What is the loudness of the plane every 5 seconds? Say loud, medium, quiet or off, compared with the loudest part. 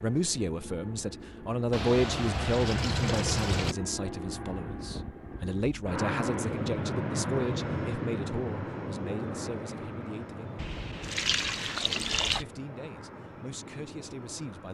medium, loud, medium.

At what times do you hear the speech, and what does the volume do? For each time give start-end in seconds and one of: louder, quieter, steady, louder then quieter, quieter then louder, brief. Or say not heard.
0.0-10.7 quieter
11.8-14.6 brief.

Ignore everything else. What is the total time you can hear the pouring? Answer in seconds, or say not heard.
4 s.